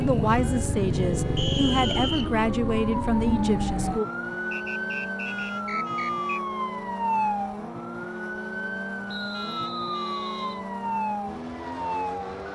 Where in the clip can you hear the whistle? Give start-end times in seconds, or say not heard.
1.4-2.5, 4.5-6.4, 9.1-10.6.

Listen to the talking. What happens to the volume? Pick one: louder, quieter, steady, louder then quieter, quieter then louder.
steady.